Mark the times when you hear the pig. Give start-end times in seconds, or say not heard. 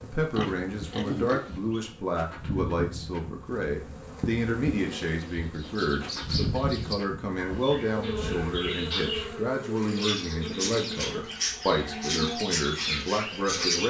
0.3-1.9.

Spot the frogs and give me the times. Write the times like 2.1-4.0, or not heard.
not heard.